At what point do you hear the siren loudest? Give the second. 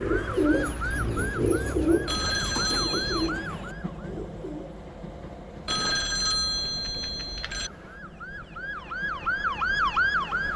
10 s.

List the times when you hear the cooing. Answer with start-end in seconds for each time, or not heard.
0.0-4.8.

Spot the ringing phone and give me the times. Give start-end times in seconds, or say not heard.
2.0-3.3, 5.7-7.7.